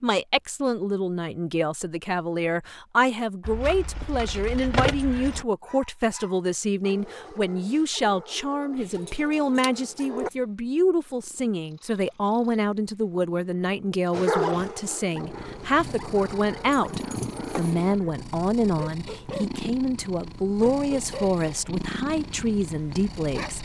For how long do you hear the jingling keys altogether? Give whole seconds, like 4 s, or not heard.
5 s.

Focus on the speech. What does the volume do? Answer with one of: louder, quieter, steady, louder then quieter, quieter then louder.
steady.